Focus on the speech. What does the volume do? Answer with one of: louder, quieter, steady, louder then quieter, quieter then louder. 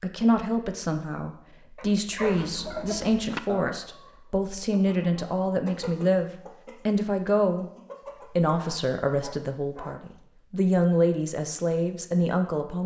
steady.